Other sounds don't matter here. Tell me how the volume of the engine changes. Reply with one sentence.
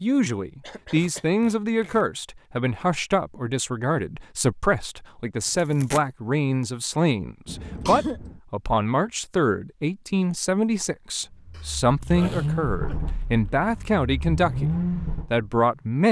The volume of the engine goes down, then up.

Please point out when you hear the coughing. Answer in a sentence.
The coughing can be heard from 0.6 to 1.2 s, from 7.5 to 8.4 s and from 11.5 to 13.0 s.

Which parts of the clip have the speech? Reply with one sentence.
You can hear the speech from 0.0 to 16.0 s.